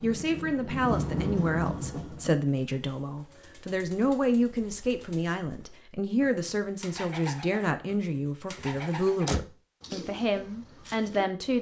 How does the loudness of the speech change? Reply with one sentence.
The volume of the speech stays about the same.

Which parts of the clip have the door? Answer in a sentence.
The door can be heard from 8.6 to 9.4 s.